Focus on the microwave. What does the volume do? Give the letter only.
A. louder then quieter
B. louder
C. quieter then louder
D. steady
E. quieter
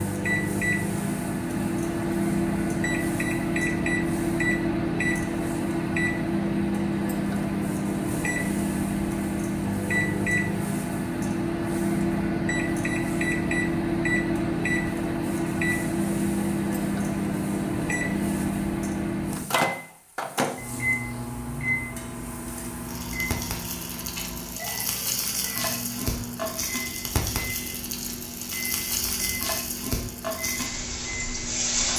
E.